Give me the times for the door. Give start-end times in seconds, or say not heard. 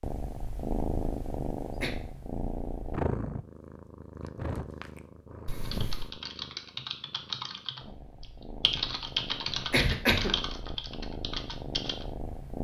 not heard.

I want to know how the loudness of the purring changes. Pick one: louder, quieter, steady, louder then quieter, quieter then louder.
quieter then louder.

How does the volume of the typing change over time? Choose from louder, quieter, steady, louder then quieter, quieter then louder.
louder then quieter.